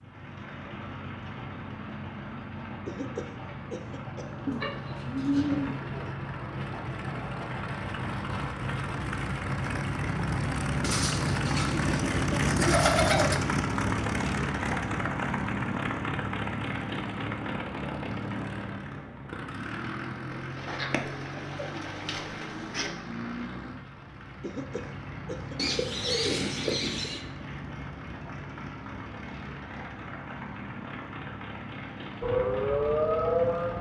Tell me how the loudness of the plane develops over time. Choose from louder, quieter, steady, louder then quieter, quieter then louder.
louder then quieter.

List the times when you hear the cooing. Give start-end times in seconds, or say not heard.
4.5-6.1, 10.8-13.3, 20.3-22.9, 25.6-27.2.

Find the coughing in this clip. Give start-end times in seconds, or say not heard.
2.9-4.5, 24.4-25.6.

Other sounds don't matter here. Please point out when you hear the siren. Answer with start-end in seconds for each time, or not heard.
32.2-33.7.